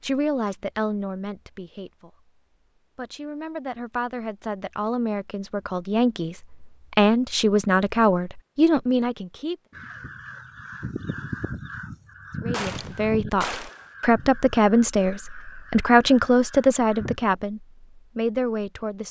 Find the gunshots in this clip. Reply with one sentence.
You can hear the gunshots from 12.5 to 13.8 s.